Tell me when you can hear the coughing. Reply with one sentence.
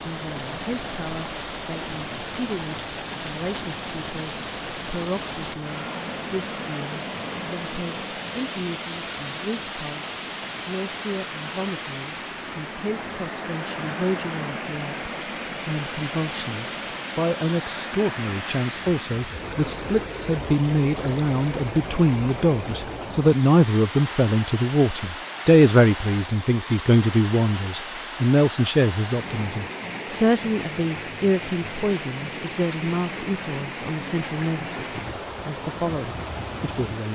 You can't hear the coughing here.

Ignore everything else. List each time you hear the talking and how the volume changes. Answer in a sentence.
You can hear the talking from 0.0 to 37.1 s, getting louder then quieter.